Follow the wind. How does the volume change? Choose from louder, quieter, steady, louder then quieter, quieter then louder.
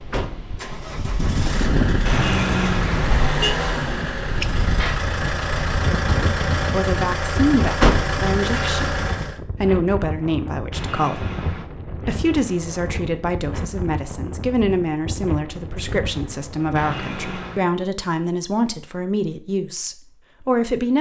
quieter.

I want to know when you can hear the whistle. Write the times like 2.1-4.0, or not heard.
not heard.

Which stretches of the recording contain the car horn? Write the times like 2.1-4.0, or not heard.
2.0-3.5, 10.7-11.7, 16.8-17.7.